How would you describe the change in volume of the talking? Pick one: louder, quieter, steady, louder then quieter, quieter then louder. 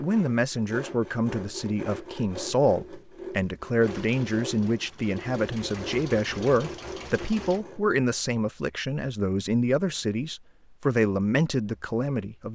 steady.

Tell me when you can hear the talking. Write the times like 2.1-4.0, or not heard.
0.0-12.5.